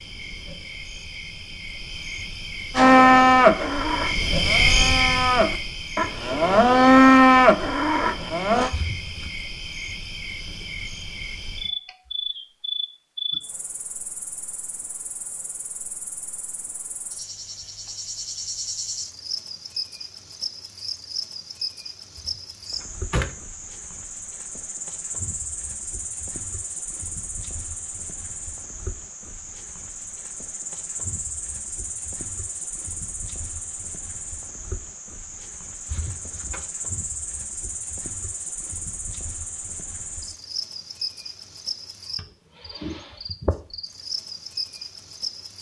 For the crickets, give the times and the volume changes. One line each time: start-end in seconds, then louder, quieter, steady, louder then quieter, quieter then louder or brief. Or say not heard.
0.0-45.5 quieter.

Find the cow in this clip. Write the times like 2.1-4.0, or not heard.
2.8-8.7.